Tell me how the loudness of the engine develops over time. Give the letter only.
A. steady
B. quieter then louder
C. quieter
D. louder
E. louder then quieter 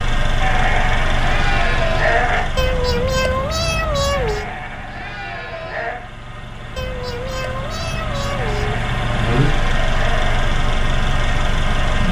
B.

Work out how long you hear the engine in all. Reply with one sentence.
You can hear the engine for 12 seconds altogether.